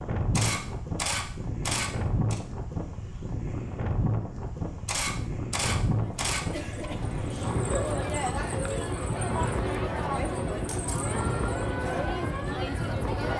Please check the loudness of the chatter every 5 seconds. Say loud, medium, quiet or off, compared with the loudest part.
off, loud, loud.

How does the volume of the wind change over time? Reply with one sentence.
The volume of the wind stays about the same.